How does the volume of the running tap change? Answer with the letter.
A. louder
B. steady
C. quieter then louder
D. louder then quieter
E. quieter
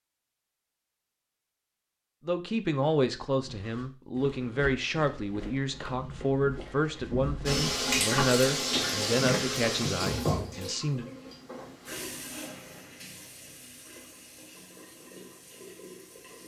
E.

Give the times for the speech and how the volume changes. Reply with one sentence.
The speech can be heard from 2.2 to 11.1 s, at a steady volume.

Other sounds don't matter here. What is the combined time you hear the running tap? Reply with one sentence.
You can hear the running tap for 9 seconds altogether.